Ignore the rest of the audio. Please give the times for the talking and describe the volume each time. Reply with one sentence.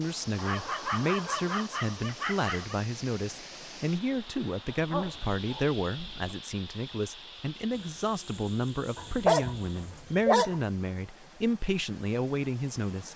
You can hear the talking from 0.0 to 13.1 s, at a steady volume.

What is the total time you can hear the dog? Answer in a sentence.
You can hear the dog for 6 seconds altogether.